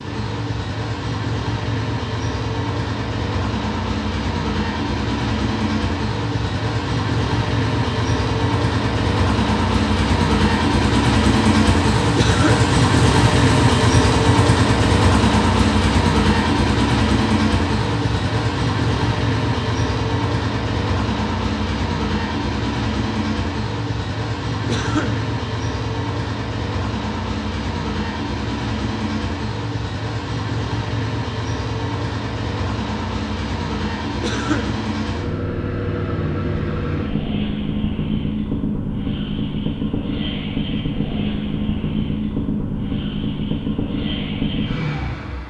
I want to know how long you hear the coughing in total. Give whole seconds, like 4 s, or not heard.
2 s.